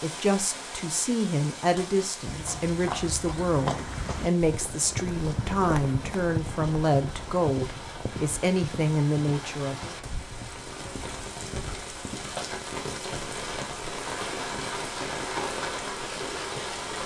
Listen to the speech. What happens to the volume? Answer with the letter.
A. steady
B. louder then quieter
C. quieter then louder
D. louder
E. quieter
A.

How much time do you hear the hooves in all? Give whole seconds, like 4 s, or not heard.
10 s.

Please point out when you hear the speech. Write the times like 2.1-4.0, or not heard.
0.0-9.9.